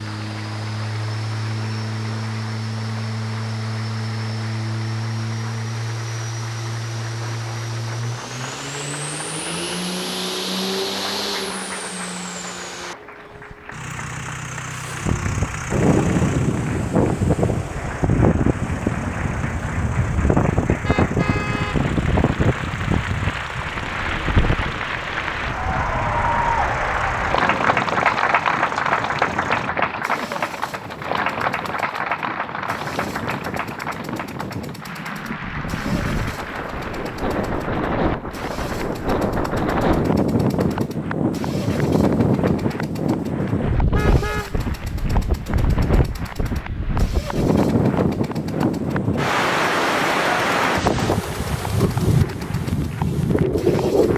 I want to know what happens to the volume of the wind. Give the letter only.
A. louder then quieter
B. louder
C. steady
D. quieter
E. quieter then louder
E.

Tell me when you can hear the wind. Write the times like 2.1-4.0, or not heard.
15.0-54.1.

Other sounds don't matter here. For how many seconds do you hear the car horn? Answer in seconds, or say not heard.
2 s.